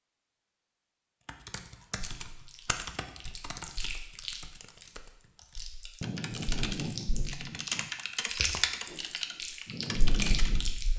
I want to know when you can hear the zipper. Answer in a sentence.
You can't hear the zipper here.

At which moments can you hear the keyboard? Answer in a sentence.
The keyboard can be heard from 1.2 to 10.8 s.